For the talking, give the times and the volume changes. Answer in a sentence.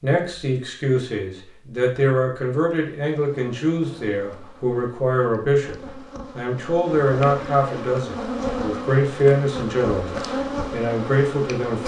The talking can be heard from 0.0 to 11.8 s, at a steady volume.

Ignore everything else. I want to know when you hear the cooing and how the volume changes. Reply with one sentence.
You can't hear the cooing here.